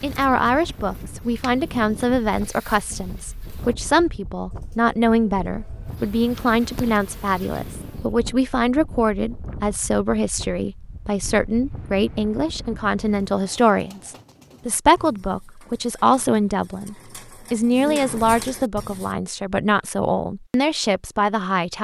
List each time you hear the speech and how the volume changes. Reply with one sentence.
You can hear the speech from 0.0 to 21.7 s, at a steady volume.